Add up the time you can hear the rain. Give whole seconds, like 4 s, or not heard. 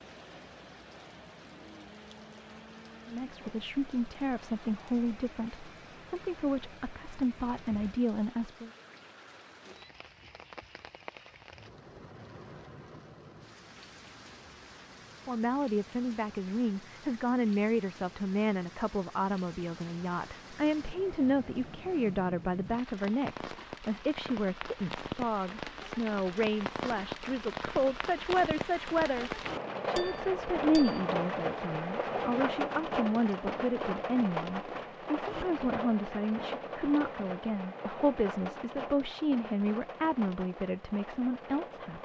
42 s.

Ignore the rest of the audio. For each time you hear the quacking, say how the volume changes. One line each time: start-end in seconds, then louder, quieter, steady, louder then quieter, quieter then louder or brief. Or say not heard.
not heard.